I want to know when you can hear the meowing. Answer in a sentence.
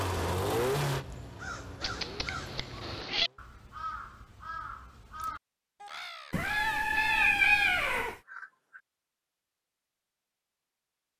You can hear the meowing from 1.8 to 3.3 s and from 6.3 to 8.2 s.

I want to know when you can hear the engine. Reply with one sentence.
You can hear the engine from 0.0 to 3.4 s.